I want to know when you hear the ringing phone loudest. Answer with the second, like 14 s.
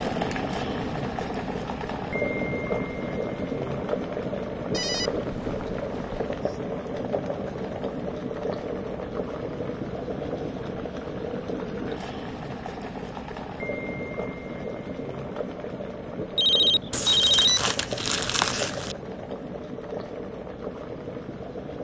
17 s.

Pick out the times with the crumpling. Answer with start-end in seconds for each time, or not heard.
16.9-18.9.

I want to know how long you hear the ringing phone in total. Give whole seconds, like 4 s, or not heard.
3 s.